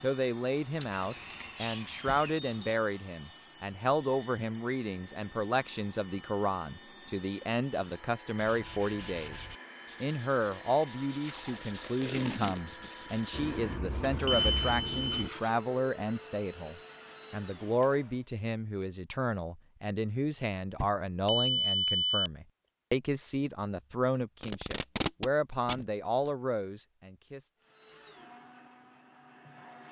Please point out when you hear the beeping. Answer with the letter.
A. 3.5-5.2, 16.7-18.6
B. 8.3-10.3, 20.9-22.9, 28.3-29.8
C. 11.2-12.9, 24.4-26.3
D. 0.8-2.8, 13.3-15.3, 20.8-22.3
D.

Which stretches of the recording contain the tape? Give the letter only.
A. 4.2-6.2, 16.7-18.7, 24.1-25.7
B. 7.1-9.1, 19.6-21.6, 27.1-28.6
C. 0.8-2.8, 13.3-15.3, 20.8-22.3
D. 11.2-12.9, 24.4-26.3
D.